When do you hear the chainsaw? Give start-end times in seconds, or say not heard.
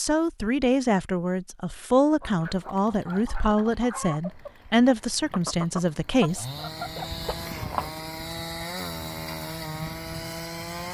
2.4-10.8.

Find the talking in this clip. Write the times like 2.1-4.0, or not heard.
0.0-6.5.